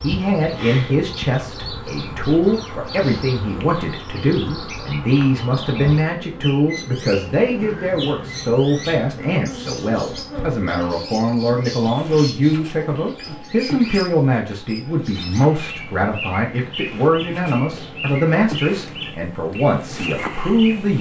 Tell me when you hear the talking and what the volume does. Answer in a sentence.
The talking can be heard from 0.0 to 20.9 s, at a steady volume.